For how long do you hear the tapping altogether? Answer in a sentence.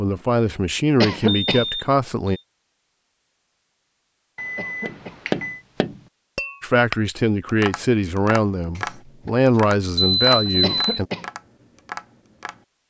You can hear the tapping for 8 seconds altogether.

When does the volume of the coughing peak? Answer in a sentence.
The loudest moment of the coughing is at 1 second.